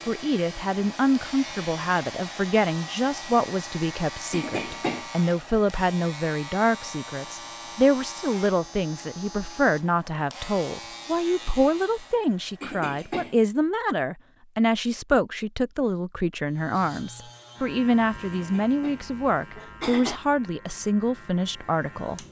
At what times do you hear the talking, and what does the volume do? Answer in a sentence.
The talking can be heard from 0.1 to 22.2 s, at a steady volume.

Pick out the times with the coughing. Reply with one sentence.
You can hear the coughing from 4.3 to 5.0 s, from 12.6 to 13.3 s and from 18.3 to 20.2 s.